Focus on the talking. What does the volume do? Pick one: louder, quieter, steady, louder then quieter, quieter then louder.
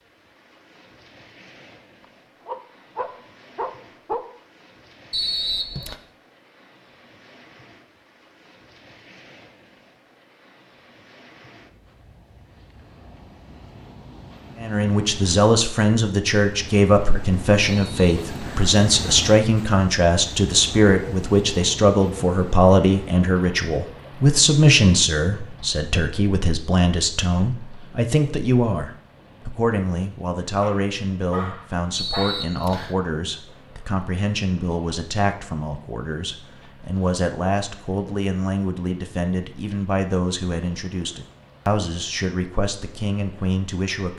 quieter.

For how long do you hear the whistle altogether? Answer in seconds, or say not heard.
3 s.